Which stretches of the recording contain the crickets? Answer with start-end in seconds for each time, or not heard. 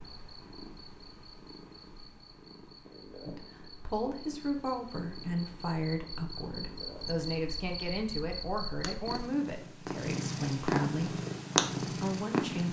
0.0-9.2.